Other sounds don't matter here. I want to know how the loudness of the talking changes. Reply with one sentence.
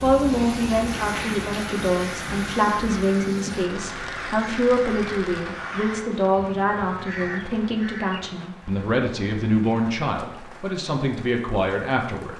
The loudness of the talking stays about the same.